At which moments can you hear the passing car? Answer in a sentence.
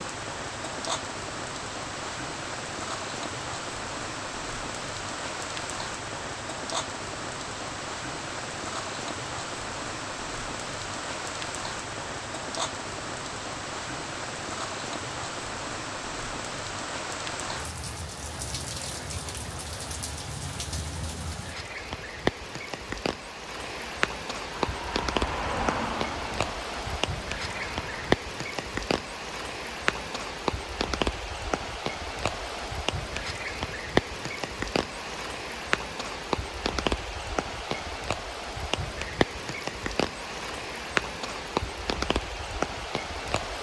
The passing car can be heard from 24.5 to 28.1 s.